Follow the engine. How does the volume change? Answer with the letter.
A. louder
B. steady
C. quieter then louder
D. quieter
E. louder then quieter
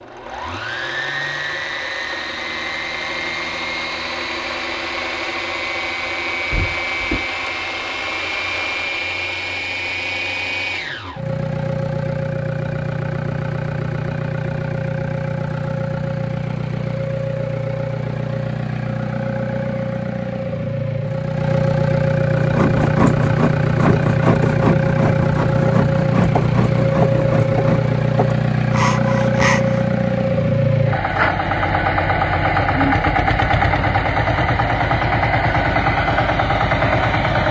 A.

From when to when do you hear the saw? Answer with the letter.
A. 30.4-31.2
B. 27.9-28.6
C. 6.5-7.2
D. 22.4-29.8
D.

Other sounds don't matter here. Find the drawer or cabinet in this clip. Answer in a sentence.
The drawer or cabinet can be heard from 6.5 to 7.2 s.